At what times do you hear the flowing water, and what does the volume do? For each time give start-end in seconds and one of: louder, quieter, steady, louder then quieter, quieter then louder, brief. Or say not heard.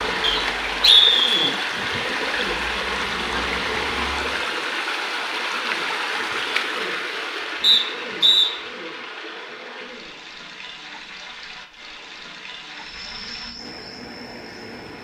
0.0-15.0 quieter.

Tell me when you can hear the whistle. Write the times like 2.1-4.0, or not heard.
0.2-1.6, 7.6-8.5.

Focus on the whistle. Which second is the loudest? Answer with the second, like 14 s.
1 s.